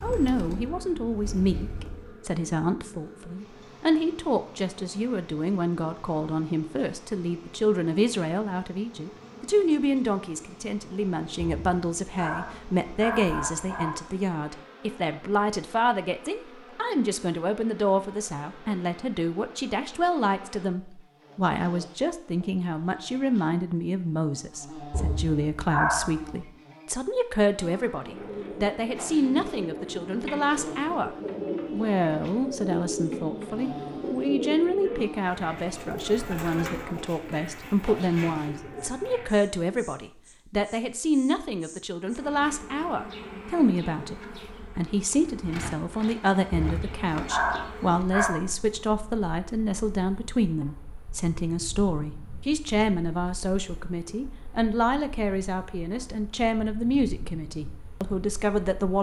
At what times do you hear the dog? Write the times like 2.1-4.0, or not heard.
11.4-13.9, 24.9-26.4, 46.5-48.4.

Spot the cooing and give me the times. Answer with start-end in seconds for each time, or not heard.
0.0-2.1, 27.9-39.5.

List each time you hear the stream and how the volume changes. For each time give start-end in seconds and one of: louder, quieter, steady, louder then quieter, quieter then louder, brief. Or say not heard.
not heard.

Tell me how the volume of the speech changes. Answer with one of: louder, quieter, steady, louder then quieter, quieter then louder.
steady.